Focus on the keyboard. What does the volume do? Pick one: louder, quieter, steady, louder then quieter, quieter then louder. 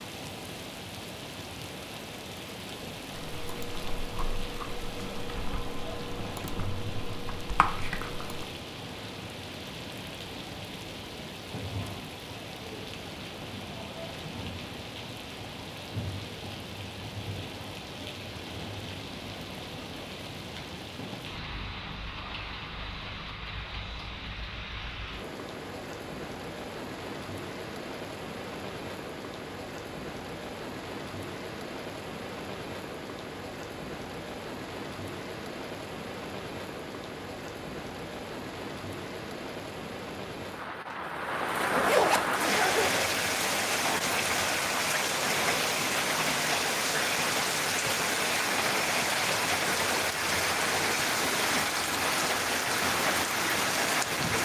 louder.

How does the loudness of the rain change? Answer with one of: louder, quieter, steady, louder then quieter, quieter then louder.
louder.